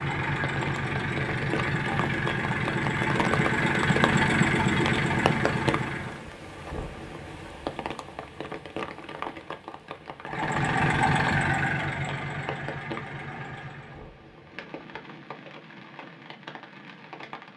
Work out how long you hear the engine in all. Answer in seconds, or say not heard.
10 s.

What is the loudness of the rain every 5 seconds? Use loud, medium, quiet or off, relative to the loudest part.
loud, loud, medium, medium.